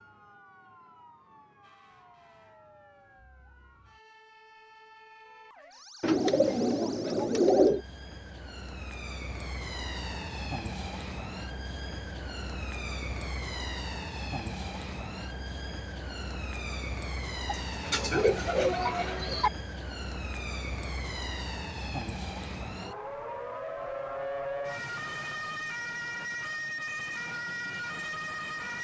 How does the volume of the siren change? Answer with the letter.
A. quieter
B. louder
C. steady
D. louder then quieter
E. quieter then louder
B.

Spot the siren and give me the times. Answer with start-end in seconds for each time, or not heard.
0.0-28.7.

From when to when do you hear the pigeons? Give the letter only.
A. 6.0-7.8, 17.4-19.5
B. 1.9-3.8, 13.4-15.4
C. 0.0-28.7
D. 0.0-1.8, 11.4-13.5
A.